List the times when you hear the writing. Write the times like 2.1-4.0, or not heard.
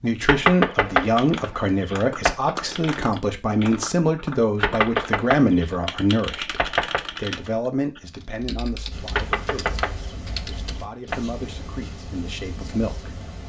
8.9-13.4.